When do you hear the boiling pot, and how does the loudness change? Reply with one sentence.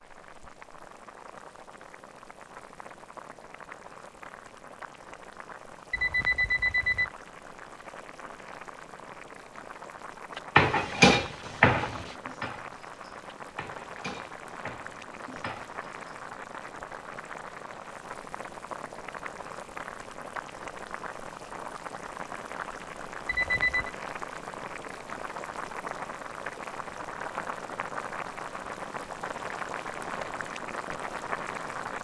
You can hear the boiling pot from 0.0 to 31.9 s, getting louder.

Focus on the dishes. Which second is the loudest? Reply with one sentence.
The loudest moment of the dishes is at 11 seconds.